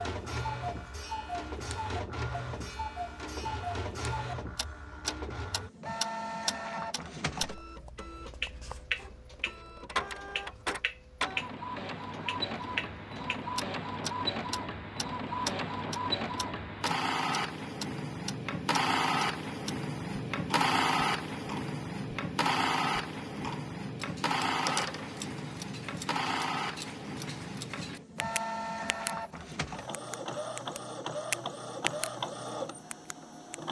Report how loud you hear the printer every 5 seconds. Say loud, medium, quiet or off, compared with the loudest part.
medium, medium, medium, loud, loud, medium, medium.